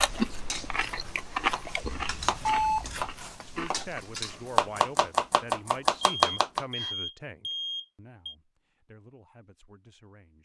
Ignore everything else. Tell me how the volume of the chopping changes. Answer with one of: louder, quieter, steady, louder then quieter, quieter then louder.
louder.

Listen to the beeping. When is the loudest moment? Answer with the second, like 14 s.
3 s.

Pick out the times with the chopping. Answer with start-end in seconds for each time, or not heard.
0.1-6.9.